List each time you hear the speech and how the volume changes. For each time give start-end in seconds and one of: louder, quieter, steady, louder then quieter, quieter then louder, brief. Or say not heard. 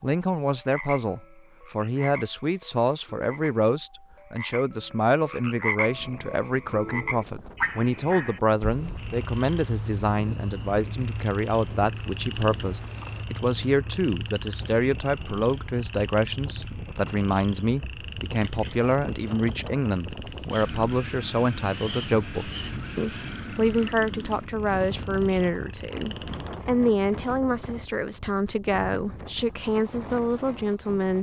0.0-31.1 steady.